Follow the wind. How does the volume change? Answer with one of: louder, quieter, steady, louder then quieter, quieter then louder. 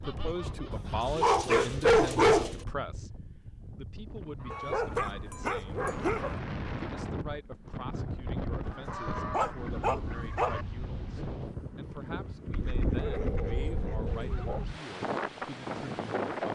louder.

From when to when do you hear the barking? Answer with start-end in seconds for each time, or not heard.
1.1-2.6, 4.5-6.4, 9.3-10.6, 12.9-14.7.